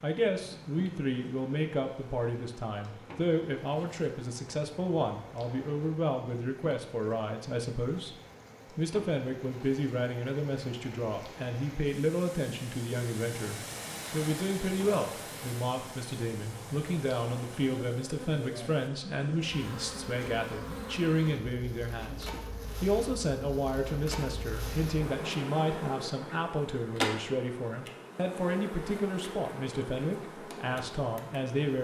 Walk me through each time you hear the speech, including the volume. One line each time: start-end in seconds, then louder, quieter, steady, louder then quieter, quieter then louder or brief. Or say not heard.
0.0-31.7 steady.